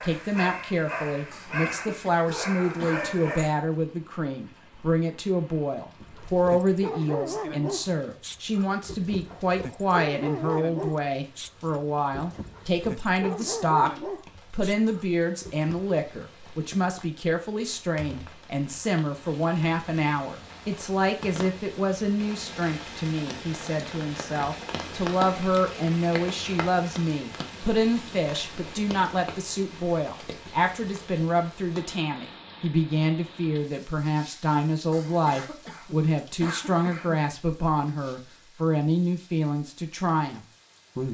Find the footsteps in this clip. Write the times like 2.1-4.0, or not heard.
not heard.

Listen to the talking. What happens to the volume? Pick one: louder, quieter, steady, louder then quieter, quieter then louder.
steady.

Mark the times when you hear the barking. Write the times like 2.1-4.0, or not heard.
0.0-3.6, 6.0-16.0.